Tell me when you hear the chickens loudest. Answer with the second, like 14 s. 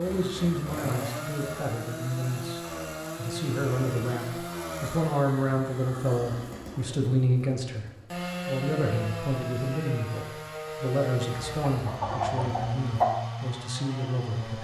13 s.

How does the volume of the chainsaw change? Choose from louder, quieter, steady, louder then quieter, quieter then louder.
steady.